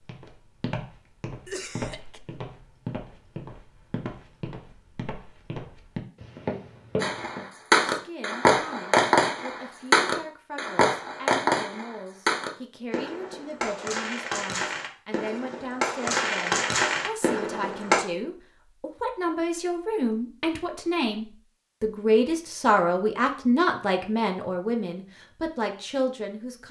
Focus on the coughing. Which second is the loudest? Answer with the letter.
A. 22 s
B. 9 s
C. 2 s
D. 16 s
C.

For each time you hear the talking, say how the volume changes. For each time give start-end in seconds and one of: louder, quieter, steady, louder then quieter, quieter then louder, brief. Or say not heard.
7.9-26.6 louder.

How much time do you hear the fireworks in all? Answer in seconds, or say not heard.
11 s.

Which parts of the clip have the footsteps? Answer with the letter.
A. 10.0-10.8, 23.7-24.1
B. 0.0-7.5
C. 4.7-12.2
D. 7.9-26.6
B.